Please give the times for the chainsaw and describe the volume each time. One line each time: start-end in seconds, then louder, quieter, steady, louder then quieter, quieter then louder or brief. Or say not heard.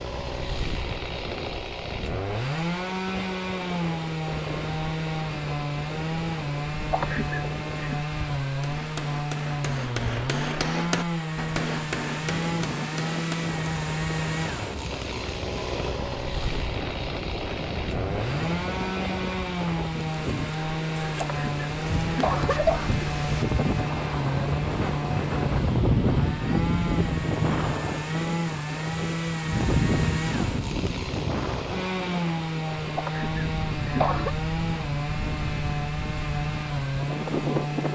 0.0-37.9 steady.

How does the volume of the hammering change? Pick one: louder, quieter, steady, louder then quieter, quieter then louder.
louder then quieter.